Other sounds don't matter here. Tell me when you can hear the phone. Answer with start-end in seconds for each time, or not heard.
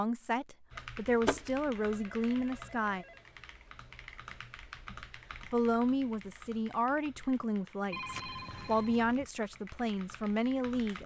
0.8-3.1, 7.9-9.3.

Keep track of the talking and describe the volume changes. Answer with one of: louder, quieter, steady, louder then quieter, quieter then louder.
steady.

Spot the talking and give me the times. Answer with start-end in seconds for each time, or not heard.
0.0-3.0, 4.9-11.0.